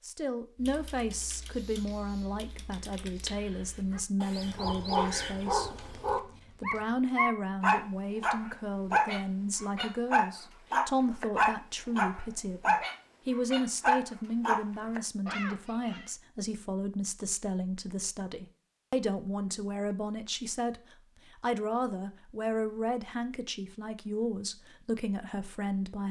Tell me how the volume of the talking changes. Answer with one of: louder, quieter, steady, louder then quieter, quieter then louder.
steady.